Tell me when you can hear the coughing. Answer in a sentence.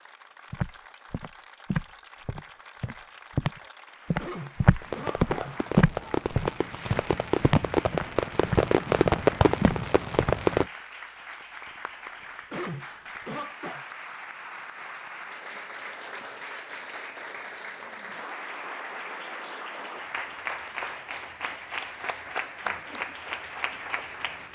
The coughing can be heard from 4.2 to 6.1 s and from 12.5 to 13.8 s.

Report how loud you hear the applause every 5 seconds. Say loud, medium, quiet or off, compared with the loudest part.
quiet, medium, medium, loud, loud.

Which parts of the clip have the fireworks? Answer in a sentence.
You can hear the fireworks from 4.8 to 10.7 s.